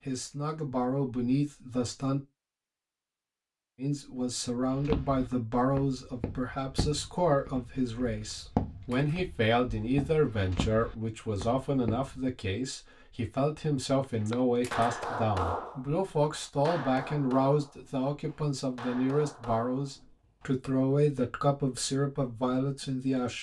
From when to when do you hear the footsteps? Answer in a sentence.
The footsteps can be heard from 4.7 to 12.2 s.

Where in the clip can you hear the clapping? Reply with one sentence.
The clapping can be heard from 14.0 to 20.6 s.